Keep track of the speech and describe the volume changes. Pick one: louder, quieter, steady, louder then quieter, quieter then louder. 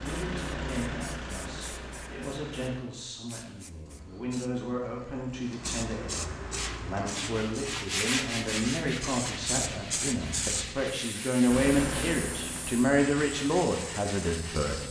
louder.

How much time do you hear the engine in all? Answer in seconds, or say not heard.
4 s.